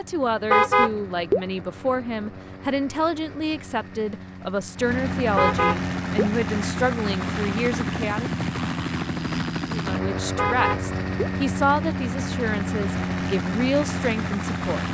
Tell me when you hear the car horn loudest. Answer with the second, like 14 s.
1 s.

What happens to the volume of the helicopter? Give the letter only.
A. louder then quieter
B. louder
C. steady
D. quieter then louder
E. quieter
B.